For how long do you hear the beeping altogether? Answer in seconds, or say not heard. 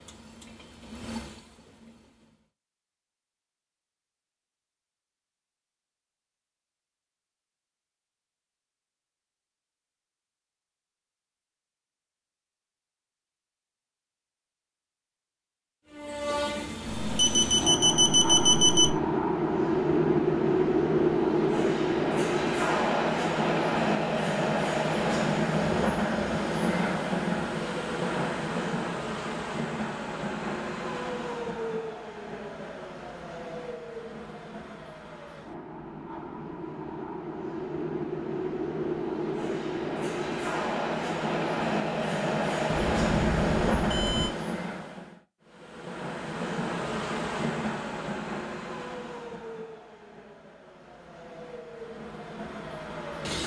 4 s.